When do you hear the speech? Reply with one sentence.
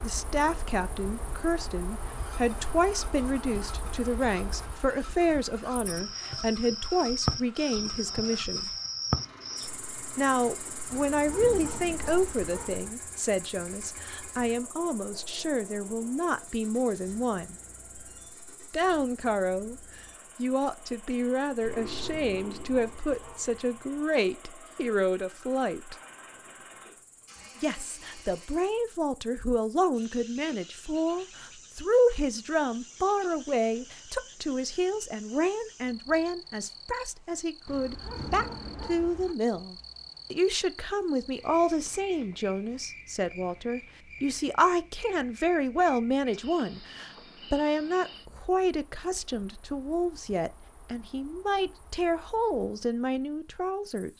The speech can be heard from 0.0 to 8.7 s, from 10.2 to 17.6 s, from 18.7 to 25.9 s and from 27.6 to 54.1 s.